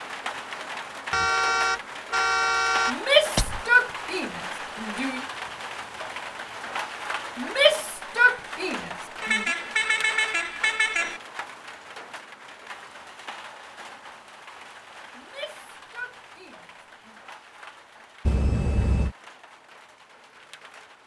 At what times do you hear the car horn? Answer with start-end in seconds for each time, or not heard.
1.1-3.7, 9.2-11.2, 18.2-19.1.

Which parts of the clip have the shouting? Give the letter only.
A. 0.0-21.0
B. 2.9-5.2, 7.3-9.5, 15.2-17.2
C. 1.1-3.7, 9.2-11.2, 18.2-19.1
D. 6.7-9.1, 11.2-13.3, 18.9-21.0
B.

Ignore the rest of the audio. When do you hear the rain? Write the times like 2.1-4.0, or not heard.
0.0-21.0.